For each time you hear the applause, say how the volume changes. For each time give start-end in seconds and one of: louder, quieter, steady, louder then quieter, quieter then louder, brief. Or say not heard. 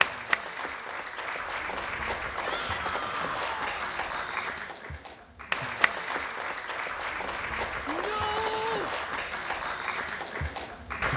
0.0-11.1 steady.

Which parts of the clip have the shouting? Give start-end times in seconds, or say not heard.
2.4-4.0, 7.8-8.9.